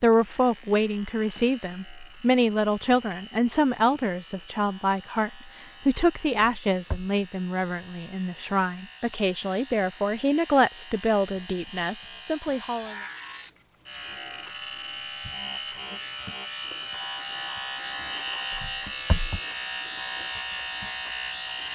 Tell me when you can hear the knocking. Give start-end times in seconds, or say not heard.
6.3-7.0, 18.5-19.4.